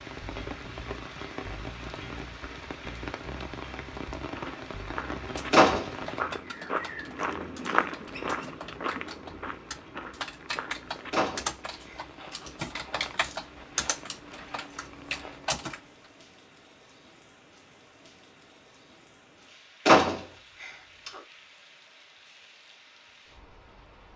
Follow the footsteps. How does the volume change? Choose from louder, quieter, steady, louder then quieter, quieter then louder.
louder then quieter.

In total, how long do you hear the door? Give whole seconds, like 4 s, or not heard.
3 s.